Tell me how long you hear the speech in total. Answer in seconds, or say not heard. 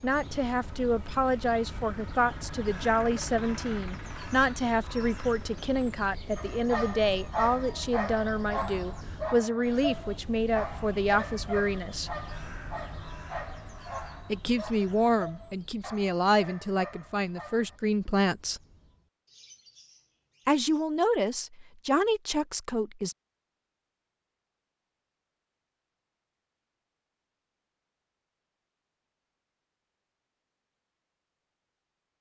19 s.